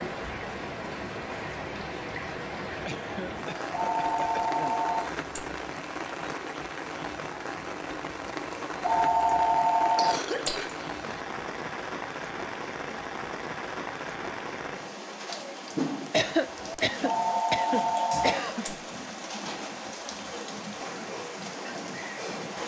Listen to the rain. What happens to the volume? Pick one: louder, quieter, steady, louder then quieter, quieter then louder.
steady.